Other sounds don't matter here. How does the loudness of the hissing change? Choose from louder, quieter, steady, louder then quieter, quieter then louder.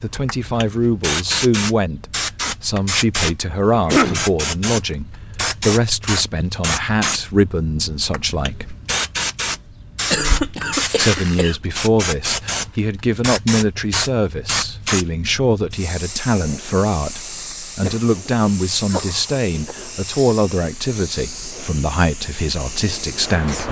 quieter.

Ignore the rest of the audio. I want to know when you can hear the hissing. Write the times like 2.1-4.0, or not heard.
0.0-23.6.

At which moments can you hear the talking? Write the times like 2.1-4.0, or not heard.
0.0-8.8, 10.9-23.6.